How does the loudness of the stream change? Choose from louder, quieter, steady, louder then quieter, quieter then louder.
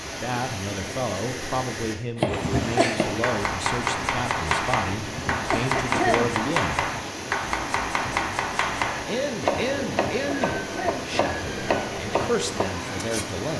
steady.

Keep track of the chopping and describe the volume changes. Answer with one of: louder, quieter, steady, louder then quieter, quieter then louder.
steady.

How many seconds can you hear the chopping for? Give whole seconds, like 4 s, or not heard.
11 s.